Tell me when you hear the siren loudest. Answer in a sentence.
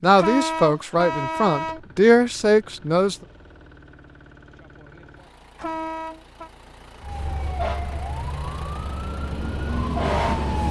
The volume of the siren peaks at 10 seconds.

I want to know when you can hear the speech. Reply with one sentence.
You can hear the speech from 0.0 to 3.1 s.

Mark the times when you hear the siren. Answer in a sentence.
You can hear the siren from 7.0 to 10.6 s.